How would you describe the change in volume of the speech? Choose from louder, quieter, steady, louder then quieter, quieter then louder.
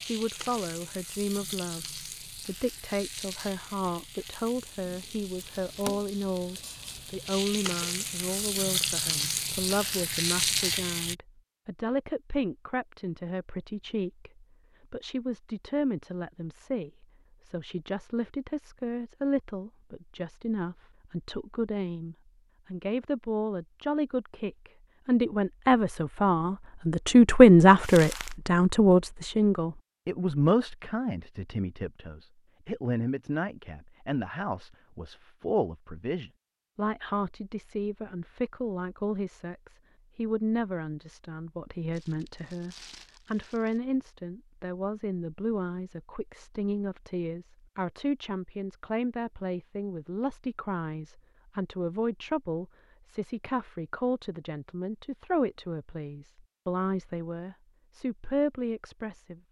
louder then quieter.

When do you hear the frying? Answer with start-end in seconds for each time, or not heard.
0.0-11.2.